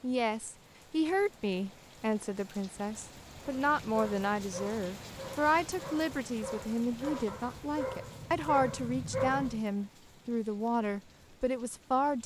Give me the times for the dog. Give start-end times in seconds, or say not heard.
3.6-9.7.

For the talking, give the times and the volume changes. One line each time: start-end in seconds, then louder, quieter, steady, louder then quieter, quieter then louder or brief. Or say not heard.
0.0-12.2 steady.